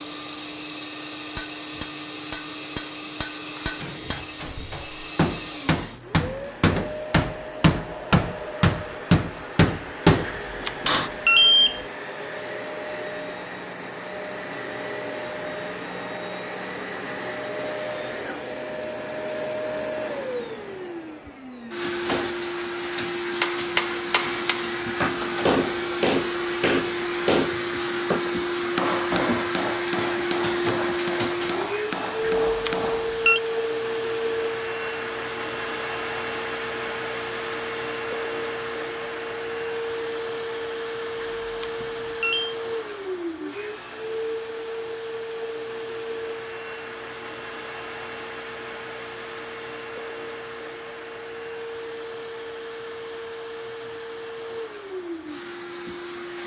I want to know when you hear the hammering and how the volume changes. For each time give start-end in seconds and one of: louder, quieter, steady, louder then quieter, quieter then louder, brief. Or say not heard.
1.3-11.1 louder
23.3-33.0 quieter.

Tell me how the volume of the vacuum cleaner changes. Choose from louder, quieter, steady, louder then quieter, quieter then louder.
louder then quieter.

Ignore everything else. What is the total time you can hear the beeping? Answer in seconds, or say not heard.
4 s.